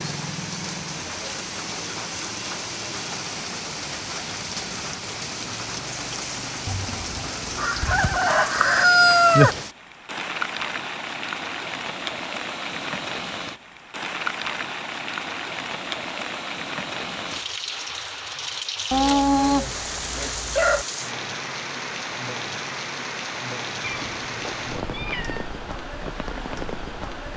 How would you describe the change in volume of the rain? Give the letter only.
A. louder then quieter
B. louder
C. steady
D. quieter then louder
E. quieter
C.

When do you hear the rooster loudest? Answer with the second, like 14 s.
9 s.